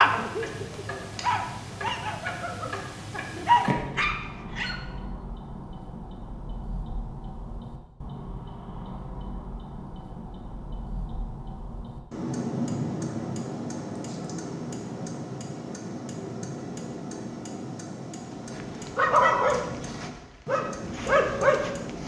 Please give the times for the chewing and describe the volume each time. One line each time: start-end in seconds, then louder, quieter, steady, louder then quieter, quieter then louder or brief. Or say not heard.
not heard.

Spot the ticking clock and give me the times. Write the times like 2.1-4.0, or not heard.
0.0-22.0.